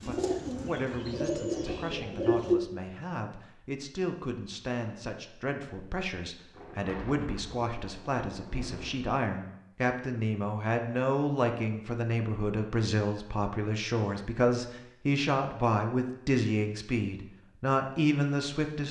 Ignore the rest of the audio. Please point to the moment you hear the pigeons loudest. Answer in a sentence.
The volume of the pigeons peaks at 2 seconds.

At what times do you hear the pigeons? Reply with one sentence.
You can hear the pigeons from 0.0 to 2.6 s.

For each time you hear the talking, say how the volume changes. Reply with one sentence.
The talking can be heard from 0.1 to 18.8 s, getting louder.